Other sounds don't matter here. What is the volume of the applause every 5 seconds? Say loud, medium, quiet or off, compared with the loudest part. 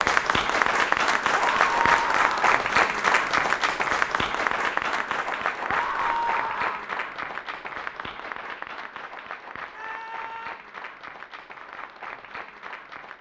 loud, medium, quiet.